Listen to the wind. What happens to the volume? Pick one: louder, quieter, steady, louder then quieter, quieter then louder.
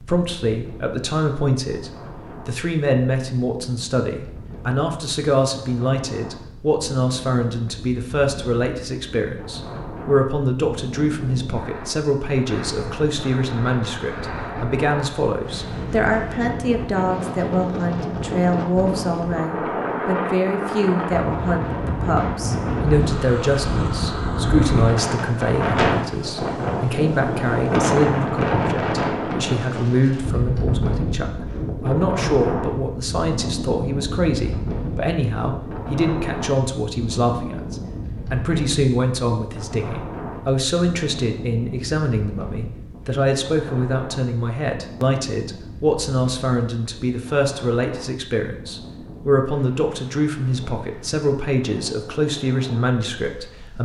louder then quieter.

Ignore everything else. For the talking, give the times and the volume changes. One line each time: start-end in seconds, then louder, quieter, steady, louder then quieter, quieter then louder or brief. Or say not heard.
0.0-53.8 steady.